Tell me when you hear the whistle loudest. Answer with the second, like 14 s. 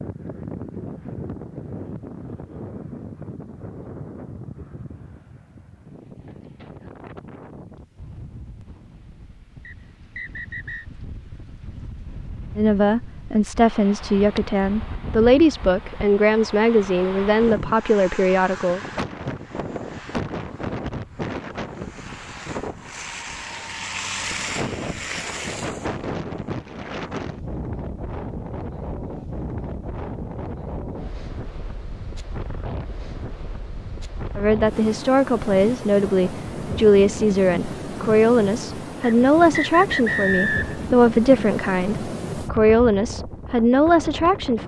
40 s.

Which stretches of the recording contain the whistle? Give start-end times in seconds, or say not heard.
9.7-10.8, 39.0-40.9.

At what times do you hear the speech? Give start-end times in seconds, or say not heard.
12.6-18.8, 34.4-44.6.